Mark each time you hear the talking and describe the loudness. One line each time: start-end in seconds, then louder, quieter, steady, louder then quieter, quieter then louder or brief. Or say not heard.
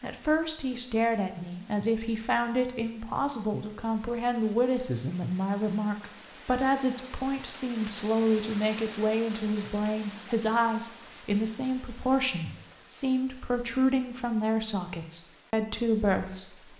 0.0-16.7 steady.